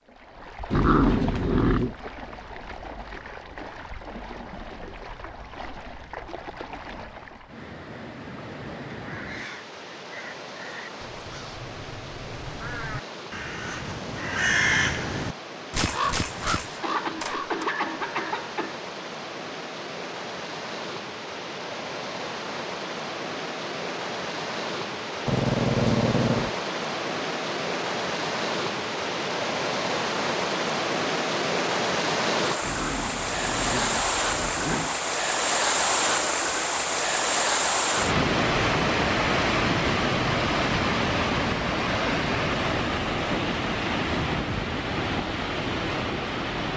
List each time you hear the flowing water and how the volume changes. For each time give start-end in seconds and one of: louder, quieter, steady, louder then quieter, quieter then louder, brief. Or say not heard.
0.0-46.7 louder.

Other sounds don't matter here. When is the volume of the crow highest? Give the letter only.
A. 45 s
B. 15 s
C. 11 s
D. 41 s
B.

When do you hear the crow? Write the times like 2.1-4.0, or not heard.
8.6-17.6.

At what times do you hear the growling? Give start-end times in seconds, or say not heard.
0.7-1.9, 25.2-26.6, 32.6-35.0.